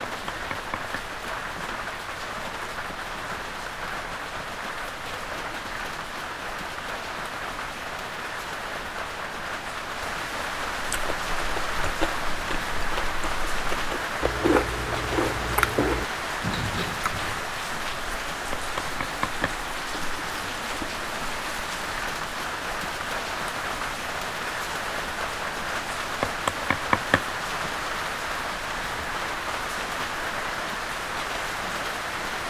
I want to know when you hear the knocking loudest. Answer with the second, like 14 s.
27 s.